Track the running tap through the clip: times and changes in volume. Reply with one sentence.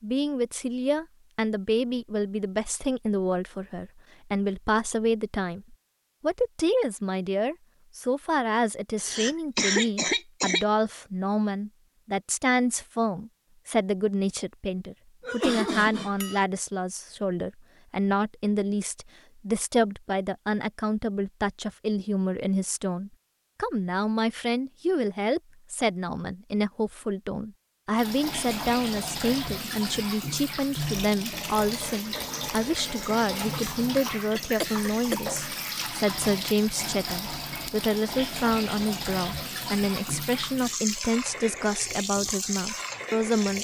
You can hear the running tap from 27.9 to 43.5 s, at a steady volume.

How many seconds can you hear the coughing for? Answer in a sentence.
The coughing can be heard for 4 seconds in total.